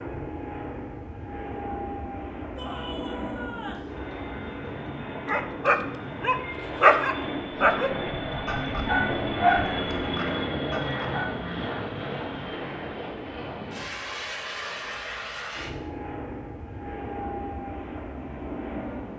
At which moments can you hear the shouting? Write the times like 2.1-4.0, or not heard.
2.5-3.9.